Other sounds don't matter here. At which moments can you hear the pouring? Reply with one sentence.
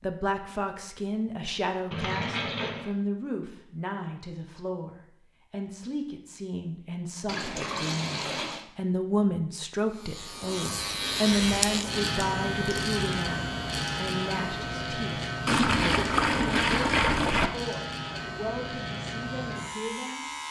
You can hear the pouring from 1.9 to 2.9 s, from 7.2 to 8.7 s and from 15.4 to 17.5 s.